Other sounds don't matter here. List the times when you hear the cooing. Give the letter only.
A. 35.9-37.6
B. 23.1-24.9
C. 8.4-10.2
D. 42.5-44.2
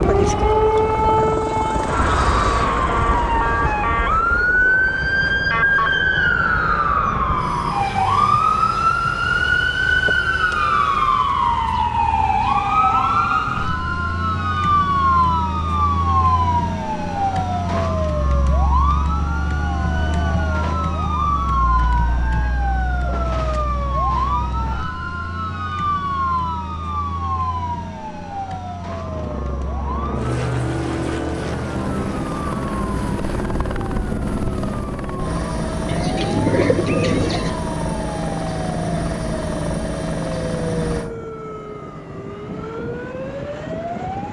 A.